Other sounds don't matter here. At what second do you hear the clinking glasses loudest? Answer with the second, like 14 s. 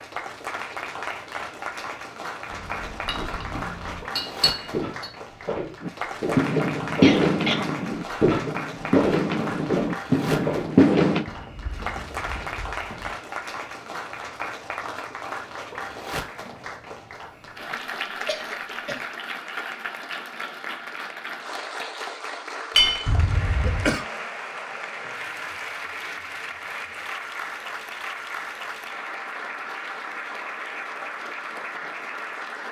23 s.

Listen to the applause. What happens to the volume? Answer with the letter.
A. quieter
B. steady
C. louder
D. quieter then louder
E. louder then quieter
B.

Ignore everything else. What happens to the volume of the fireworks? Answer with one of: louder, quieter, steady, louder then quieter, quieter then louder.
quieter then louder.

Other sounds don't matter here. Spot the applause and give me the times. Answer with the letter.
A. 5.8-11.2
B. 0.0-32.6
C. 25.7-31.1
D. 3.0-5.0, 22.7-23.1
B.